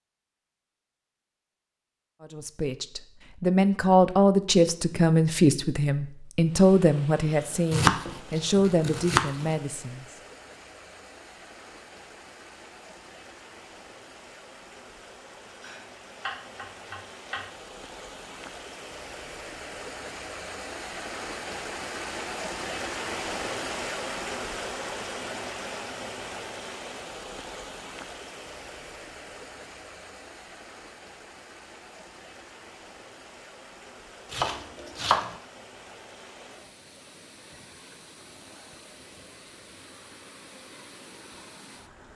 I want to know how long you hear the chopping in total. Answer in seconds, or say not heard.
5 s.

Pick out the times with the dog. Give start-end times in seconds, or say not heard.
not heard.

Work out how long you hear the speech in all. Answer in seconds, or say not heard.
8 s.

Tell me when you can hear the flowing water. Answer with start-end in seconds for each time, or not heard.
6.4-42.1.